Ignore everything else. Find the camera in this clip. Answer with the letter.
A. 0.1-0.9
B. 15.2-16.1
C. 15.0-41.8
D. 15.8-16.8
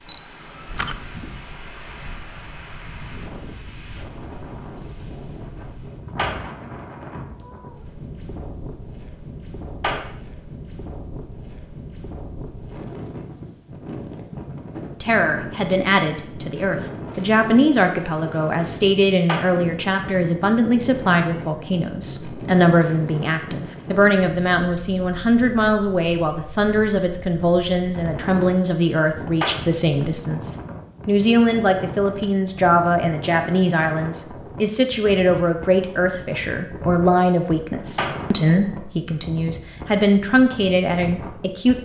A.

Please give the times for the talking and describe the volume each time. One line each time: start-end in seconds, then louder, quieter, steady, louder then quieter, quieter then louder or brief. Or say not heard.
15.0-41.8 steady.